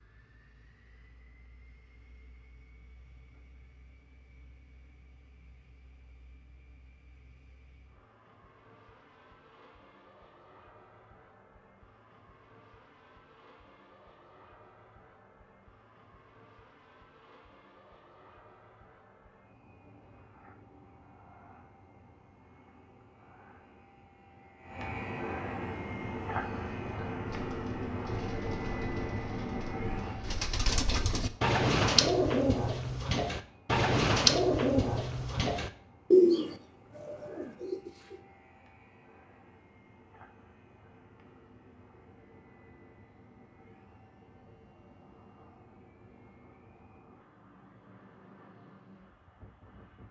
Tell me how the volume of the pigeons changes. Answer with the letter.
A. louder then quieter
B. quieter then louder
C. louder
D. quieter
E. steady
C.